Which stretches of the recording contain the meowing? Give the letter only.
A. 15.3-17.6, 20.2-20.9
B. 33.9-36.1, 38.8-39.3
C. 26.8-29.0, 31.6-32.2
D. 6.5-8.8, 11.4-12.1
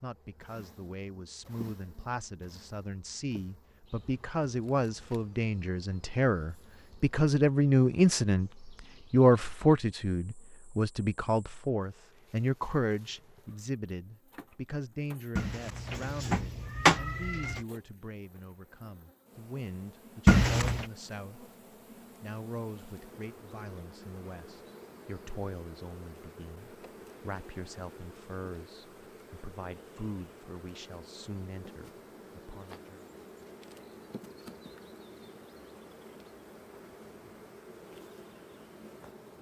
A.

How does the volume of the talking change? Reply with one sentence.
The volume of the talking goes up, then down.